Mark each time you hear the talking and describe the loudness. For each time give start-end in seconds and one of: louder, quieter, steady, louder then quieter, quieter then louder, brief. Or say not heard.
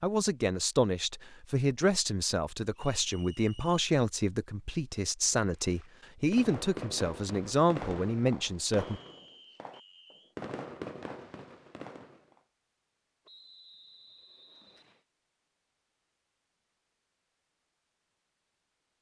0.0-9.0 steady.